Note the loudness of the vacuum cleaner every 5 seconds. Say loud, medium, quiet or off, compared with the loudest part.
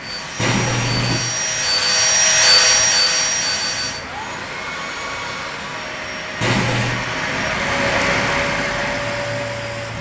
loud, medium.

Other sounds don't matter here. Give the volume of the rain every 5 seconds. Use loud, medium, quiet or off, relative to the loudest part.
medium, loud.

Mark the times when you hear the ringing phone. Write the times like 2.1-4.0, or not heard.
0.3-1.2, 6.4-7.0.